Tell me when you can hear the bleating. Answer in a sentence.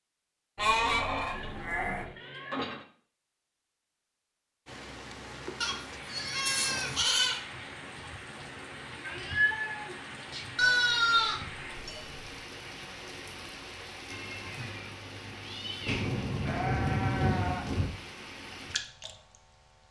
You can hear the bleating from 0.6 to 2.0 s, from 5.6 to 7.4 s, from 10.6 to 12.3 s and from 15.8 to 17.9 s.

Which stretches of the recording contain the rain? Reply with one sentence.
You can hear the rain from 4.7 to 19.8 s.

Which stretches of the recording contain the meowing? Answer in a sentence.
You can hear the meowing from 1.3 to 2.9 s, from 8.9 to 10.4 s and from 14.1 to 16.1 s.